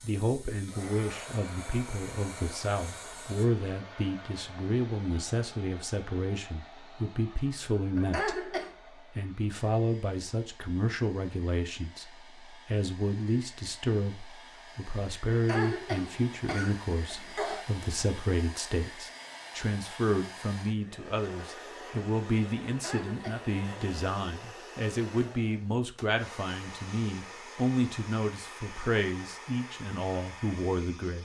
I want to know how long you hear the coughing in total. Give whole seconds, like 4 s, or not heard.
4 s.